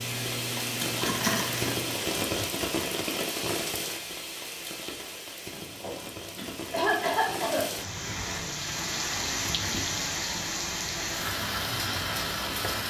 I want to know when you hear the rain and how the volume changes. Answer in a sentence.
You can hear the rain from 0.0 to 12.8 s, getting quieter then louder.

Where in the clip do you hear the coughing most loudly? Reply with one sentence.
The volume of the coughing peaks at 7 seconds.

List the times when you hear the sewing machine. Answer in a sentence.
You can hear the sewing machine from 0.0 to 2.5 s.